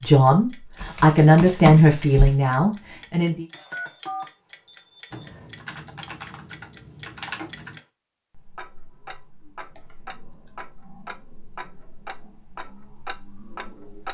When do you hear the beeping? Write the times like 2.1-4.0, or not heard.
3.5-5.0.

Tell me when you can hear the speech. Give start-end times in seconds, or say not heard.
0.0-3.5.